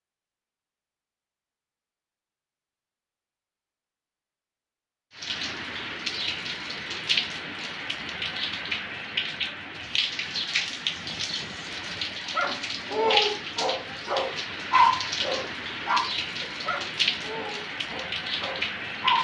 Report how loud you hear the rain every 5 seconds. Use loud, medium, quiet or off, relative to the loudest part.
off, loud, loud, loud.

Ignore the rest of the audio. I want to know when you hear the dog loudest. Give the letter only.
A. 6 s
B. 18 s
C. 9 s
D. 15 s
D.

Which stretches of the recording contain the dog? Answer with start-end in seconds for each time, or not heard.
12.3-19.1.